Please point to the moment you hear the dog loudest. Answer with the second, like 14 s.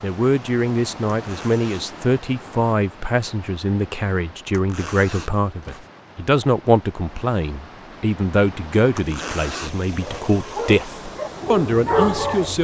12 s.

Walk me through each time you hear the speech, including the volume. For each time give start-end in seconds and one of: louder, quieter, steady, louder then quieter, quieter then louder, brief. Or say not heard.
0.0-12.6 steady.